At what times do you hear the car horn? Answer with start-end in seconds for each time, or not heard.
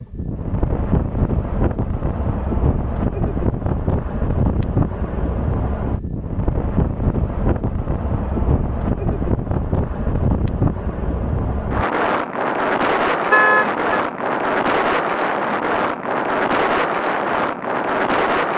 13.3-14.0.